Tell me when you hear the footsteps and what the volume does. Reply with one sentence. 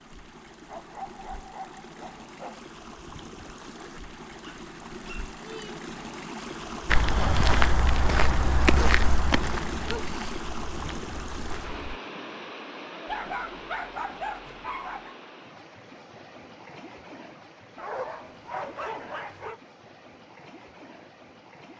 You can hear the footsteps from 6.8 to 12.0 s, getting quieter.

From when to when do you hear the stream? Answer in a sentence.
You can hear the stream from 0.0 to 21.7 s.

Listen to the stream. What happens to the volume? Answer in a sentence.
The volume of the stream goes up, then down.